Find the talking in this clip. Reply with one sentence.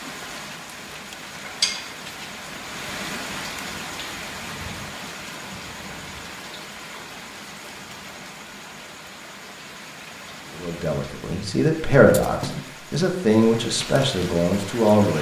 The talking can be heard from 10.6 to 15.1 s.